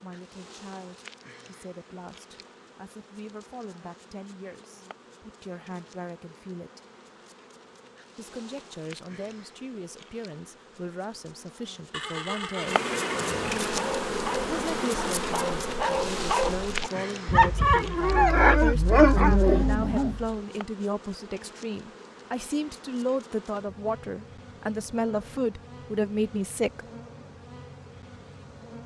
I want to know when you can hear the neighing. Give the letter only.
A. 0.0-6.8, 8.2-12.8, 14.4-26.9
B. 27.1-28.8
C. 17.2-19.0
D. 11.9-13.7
D.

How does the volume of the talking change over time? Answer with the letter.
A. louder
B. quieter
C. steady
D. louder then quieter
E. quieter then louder
A.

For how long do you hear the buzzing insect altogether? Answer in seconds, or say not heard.
29 s.